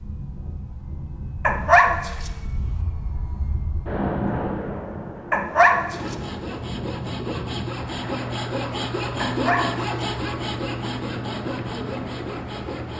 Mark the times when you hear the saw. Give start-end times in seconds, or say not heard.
5.9-12.9.